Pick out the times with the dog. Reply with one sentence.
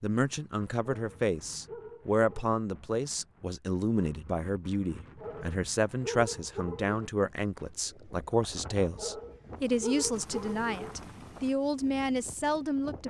The dog can be heard from 0.9 to 2.5 s, from 5.2 to 7.0 s and from 8.9 to 10.9 s.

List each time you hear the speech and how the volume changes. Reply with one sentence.
The speech can be heard from 0.0 to 13.0 s, at a steady volume.